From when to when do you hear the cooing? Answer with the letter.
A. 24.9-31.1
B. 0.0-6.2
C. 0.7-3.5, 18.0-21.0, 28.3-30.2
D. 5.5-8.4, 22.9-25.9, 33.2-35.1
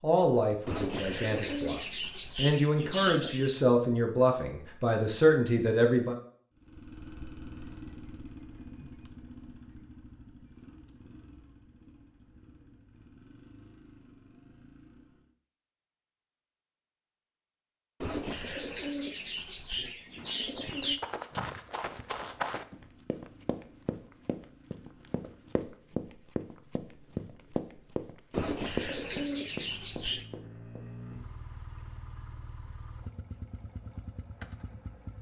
C.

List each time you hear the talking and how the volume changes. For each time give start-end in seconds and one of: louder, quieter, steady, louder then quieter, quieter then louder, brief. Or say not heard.
0.0-6.2 louder.